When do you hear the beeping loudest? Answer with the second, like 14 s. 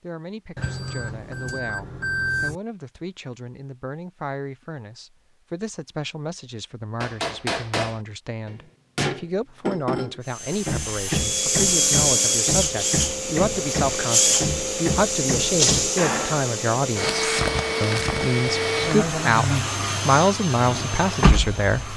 2 s.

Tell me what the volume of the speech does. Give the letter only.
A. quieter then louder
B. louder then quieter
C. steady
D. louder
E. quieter
D.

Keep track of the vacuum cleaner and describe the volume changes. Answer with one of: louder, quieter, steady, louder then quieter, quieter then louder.
steady.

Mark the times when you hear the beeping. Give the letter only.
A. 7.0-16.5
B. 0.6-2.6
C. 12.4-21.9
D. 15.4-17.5
B.